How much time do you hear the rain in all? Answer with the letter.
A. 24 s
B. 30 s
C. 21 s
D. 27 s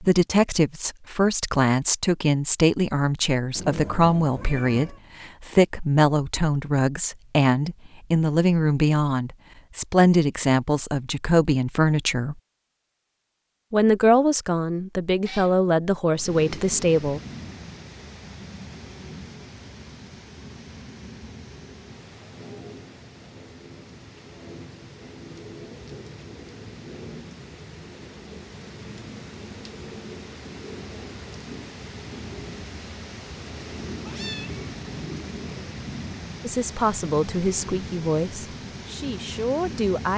A.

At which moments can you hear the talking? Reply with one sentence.
The talking can be heard from 0.0 to 12.3 s, from 13.7 to 17.2 s and from 36.5 to 40.1 s.